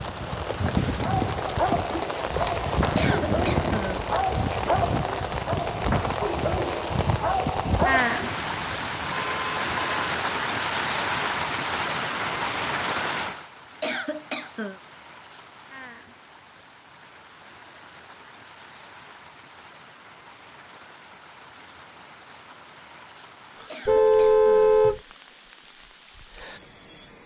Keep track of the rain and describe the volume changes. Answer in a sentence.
The volume of the rain goes down.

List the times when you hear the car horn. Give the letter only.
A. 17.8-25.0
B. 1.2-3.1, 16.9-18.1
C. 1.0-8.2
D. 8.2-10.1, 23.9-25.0
D.